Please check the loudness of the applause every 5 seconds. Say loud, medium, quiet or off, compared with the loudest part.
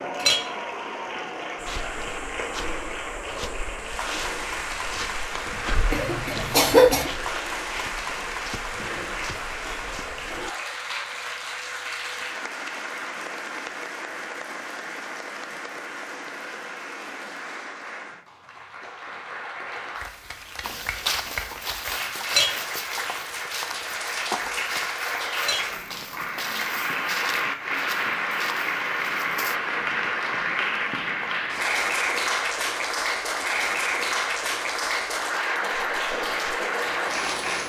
medium, medium, medium, medium, medium, loud, loud, loud.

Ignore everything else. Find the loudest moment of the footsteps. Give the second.
21 s.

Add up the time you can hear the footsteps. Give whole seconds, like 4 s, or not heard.
18 s.